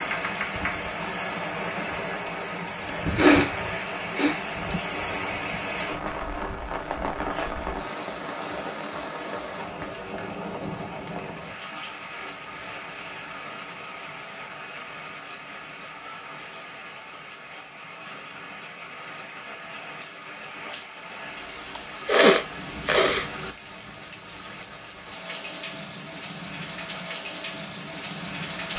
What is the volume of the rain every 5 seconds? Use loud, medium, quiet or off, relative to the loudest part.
loud, loud, medium, medium, medium, medium.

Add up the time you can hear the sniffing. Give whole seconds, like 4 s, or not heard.
3 s.